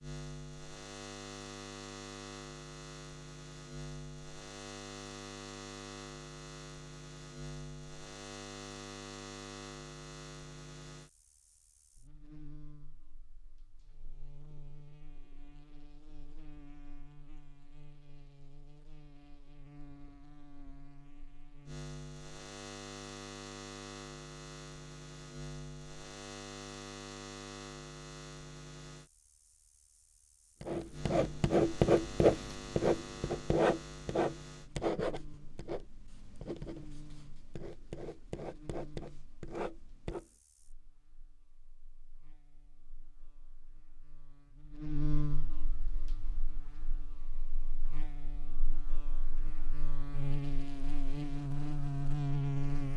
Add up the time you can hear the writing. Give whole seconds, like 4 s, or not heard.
10 s.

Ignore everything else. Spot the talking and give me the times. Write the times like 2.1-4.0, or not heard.
not heard.